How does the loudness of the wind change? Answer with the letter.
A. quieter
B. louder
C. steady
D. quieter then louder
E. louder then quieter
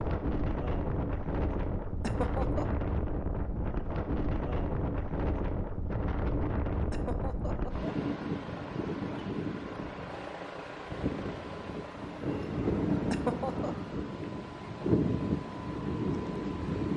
C.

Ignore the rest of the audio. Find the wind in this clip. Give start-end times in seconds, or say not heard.
0.0-16.9.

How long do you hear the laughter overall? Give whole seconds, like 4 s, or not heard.
2 s.